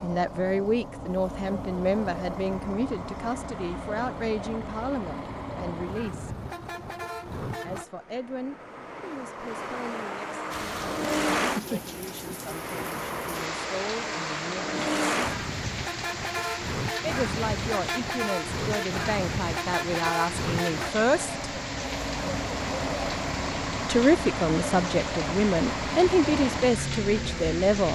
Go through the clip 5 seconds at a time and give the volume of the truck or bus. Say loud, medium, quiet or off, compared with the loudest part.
medium, medium, loud, loud, loud, loud.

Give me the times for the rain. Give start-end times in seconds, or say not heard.
10.5-27.8.